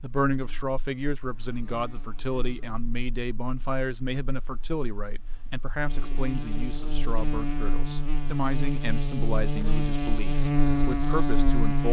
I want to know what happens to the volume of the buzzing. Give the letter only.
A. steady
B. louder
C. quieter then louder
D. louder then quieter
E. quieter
C.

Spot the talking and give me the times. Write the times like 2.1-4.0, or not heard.
0.0-11.8.